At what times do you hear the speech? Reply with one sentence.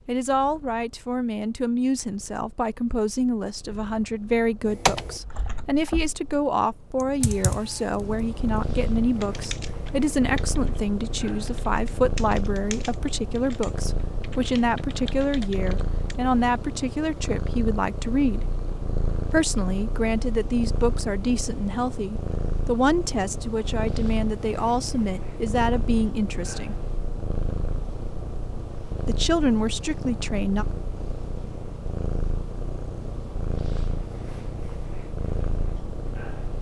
The speech can be heard from 0.1 to 18.4 s, from 19.3 to 26.8 s and from 29.0 to 30.6 s.